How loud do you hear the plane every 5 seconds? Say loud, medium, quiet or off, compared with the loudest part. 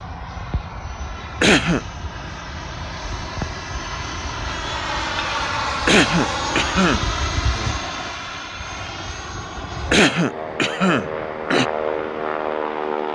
medium, loud, loud.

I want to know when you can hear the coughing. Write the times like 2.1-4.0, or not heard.
1.4-1.9, 5.8-7.0, 9.9-11.7.